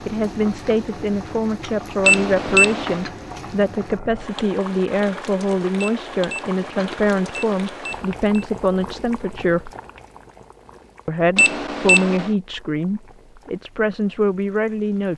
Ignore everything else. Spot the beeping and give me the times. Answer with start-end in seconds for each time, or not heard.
2.0-3.1, 5.8-8.4, 11.3-12.3.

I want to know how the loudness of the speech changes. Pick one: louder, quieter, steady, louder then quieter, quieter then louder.
steady.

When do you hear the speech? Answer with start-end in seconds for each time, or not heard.
0.1-9.7, 11.1-15.1.